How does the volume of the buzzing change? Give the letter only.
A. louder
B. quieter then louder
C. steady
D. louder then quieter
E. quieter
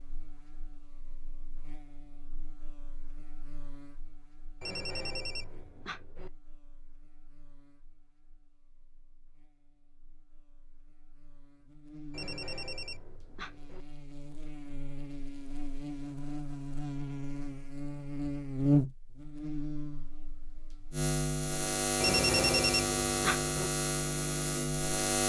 B.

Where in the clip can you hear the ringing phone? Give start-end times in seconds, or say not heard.
4.6-6.3, 12.1-13.8, 22.0-23.7.